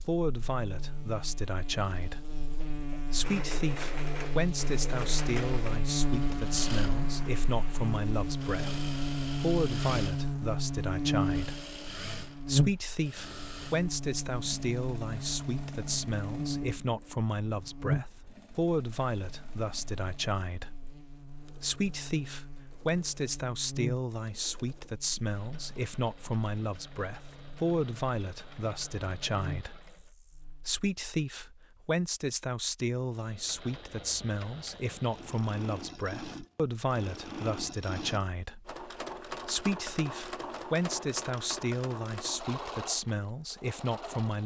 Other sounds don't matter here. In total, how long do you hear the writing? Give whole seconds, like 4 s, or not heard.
not heard.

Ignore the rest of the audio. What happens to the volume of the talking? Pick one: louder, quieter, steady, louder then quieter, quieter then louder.
steady.